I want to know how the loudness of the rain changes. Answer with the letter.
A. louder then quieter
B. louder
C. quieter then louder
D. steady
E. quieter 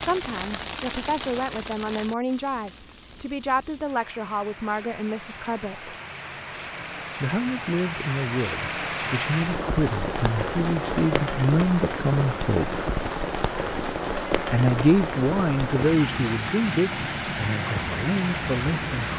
B.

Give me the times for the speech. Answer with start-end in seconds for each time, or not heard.
0.0-6.0, 7.2-12.8, 14.3-19.1.